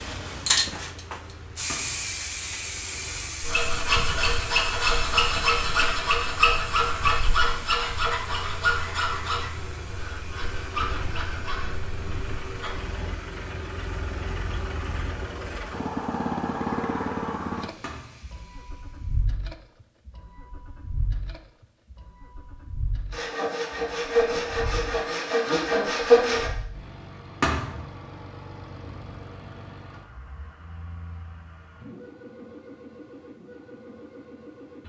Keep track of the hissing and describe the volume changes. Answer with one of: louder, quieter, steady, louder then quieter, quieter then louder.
quieter.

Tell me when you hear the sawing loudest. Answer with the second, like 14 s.
26 s.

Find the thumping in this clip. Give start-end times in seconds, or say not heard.
1.6-2.1, 17.8-18.3, 27.4-27.9.